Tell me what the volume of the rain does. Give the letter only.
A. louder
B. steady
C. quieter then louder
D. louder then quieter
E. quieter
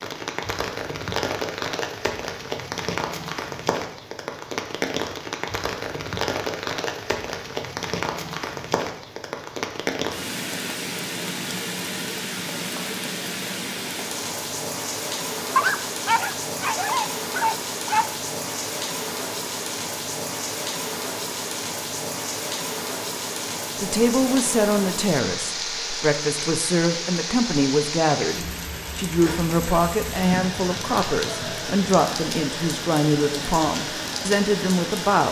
B.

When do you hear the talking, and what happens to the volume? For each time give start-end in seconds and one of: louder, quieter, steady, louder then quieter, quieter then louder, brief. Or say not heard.
23.8-35.2 steady.